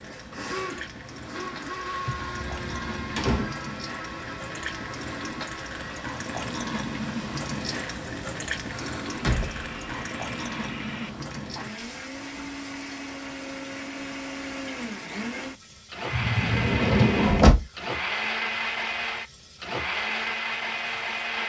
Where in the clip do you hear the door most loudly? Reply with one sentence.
The volume of the door peaks at 17 seconds.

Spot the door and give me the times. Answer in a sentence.
You can hear the door from 2.0 to 3.5 s, from 8.7 to 10.1 s and from 16.1 to 17.6 s.